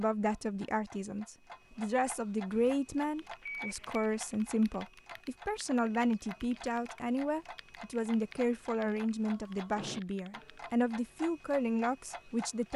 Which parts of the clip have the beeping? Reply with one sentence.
You can hear the beeping from 3.4 to 4.0 s.